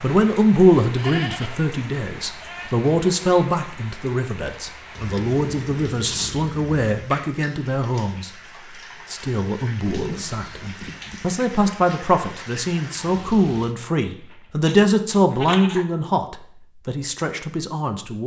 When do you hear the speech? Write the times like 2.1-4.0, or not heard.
0.0-8.3, 9.1-18.2.